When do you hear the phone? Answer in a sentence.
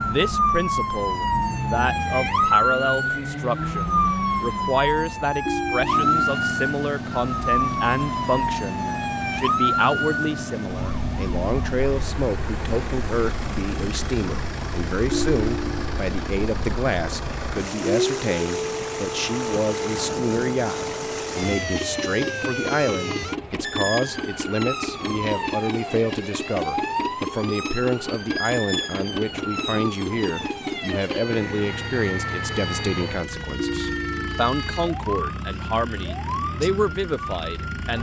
You can hear the phone from 5.5 to 6.0 s, from 15.1 to 16.1 s and from 33.5 to 34.4 s.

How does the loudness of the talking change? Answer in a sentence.
The loudness of the talking stays about the same.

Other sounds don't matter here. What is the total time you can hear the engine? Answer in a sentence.
You can hear the engine for 38 seconds altogether.